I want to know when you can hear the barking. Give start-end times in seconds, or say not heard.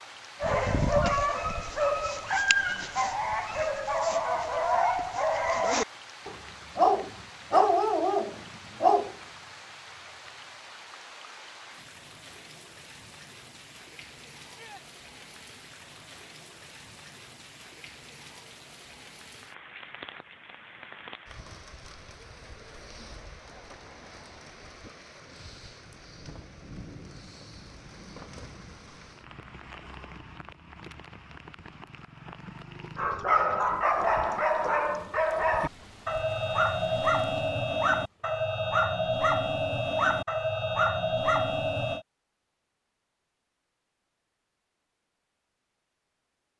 0.4-9.2, 33.0-42.0.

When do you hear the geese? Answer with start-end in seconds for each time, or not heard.
not heard.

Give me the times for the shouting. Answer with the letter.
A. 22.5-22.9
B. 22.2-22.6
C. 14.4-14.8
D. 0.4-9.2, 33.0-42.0
C.